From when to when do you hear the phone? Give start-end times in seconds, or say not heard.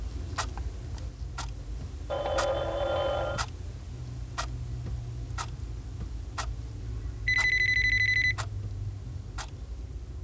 2.1-3.4, 7.2-8.3.